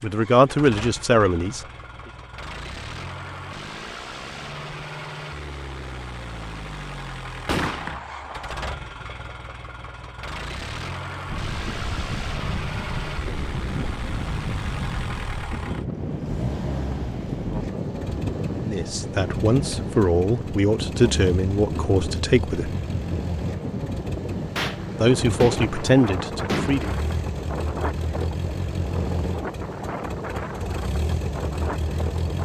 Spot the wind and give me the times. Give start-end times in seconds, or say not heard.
11.2-32.3.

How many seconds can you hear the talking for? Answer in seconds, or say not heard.
8 s.